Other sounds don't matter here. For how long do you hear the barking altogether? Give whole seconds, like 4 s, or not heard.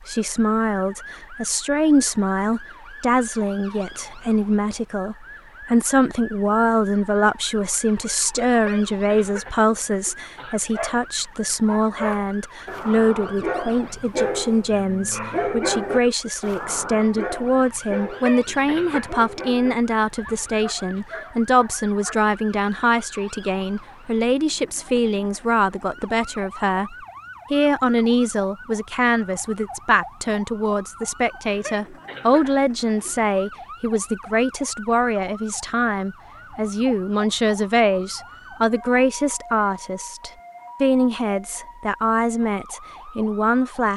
12 s.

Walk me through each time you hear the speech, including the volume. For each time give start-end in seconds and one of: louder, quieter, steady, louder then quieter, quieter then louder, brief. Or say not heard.
0.0-43.9 steady.